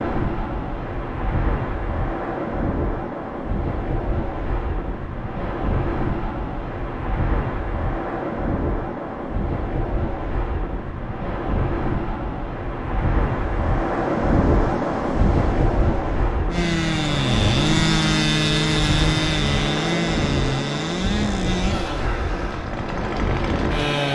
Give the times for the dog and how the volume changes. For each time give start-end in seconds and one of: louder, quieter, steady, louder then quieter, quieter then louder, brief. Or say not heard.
not heard.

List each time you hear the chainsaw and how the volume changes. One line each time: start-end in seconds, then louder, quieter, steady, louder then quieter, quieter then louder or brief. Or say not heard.
16.5-24.1 quieter.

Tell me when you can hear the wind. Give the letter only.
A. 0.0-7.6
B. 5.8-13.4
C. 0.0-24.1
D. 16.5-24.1
C.